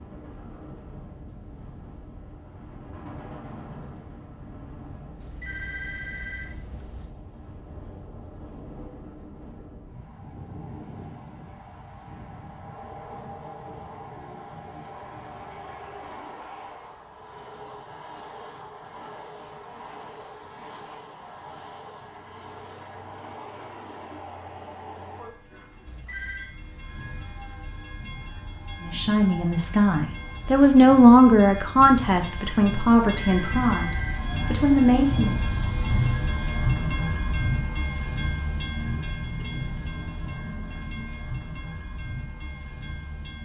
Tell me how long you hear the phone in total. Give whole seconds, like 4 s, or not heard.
4 s.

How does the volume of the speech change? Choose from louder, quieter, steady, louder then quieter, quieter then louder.
louder then quieter.